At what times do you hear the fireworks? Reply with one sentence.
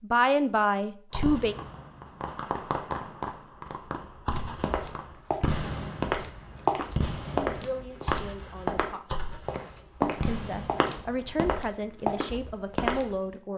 The fireworks can be heard from 1.1 to 11.4 s.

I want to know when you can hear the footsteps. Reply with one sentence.
You can hear the footsteps from 4.5 to 13.2 s.